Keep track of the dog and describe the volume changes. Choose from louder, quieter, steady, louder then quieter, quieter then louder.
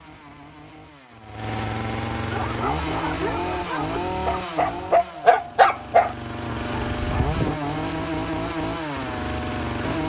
louder then quieter.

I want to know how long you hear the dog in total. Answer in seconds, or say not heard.
5 s.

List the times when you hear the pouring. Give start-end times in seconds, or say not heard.
not heard.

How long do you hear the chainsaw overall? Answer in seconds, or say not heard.
10 s.